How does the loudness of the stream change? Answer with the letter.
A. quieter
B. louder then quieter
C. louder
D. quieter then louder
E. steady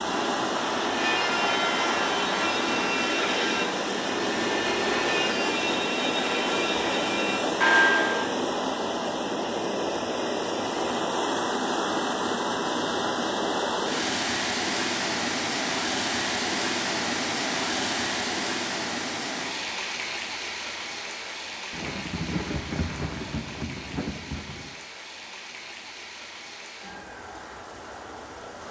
A.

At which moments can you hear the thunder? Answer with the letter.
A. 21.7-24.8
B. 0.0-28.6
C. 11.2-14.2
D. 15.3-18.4
A.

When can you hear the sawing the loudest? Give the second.
8 s.